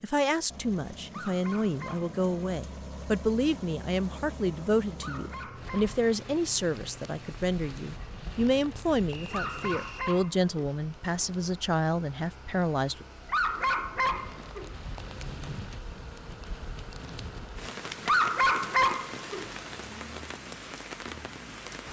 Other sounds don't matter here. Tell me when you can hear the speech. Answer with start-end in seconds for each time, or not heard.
0.0-13.1.